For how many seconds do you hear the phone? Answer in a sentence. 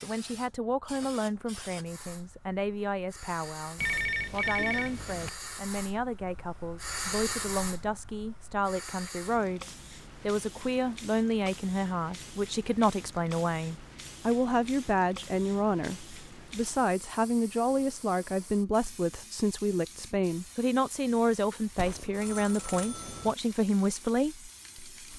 The phone can be heard for 3 seconds in total.